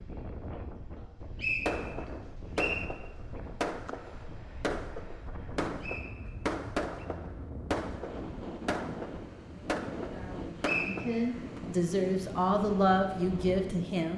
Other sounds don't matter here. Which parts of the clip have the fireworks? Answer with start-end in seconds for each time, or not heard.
1.6-11.6.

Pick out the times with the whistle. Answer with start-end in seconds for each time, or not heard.
1.4-2.9, 5.8-7.0, 10.6-11.2.